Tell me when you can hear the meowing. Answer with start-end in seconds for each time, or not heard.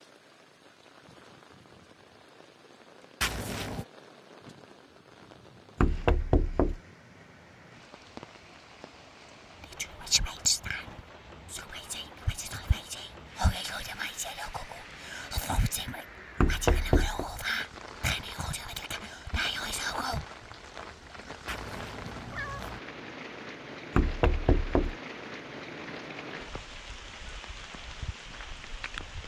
3.2-3.9, 21.4-22.8.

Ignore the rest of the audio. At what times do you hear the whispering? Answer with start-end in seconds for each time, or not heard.
9.6-20.2.